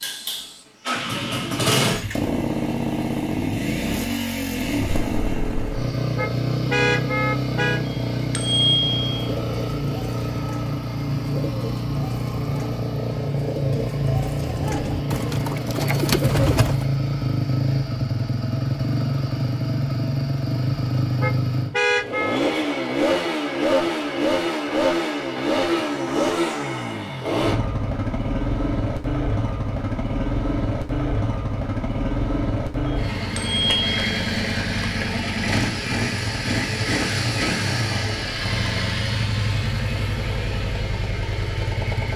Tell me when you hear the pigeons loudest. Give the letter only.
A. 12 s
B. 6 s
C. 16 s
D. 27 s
C.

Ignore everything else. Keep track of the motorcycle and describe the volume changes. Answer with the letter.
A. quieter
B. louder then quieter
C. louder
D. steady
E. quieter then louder
D.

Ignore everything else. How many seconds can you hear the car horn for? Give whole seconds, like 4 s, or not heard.
3 s.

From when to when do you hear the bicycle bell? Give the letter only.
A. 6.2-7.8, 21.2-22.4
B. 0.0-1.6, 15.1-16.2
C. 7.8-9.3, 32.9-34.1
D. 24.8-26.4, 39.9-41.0
C.